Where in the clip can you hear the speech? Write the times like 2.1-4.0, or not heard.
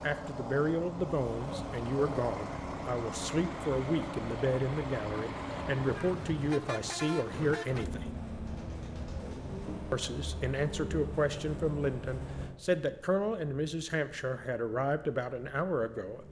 0.0-8.1, 9.9-16.2.